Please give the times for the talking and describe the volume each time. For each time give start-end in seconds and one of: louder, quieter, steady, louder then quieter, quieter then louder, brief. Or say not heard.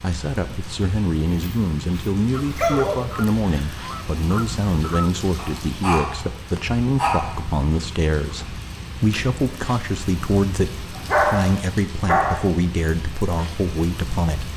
0.0-14.5 steady.